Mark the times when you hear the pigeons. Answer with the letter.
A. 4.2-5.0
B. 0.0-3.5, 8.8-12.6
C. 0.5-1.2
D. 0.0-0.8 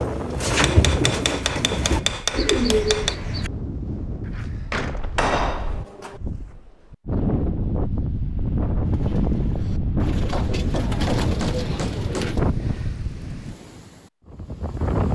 B.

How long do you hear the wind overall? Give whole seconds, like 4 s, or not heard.
15 s.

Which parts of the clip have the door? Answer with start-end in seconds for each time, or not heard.
4.2-5.0.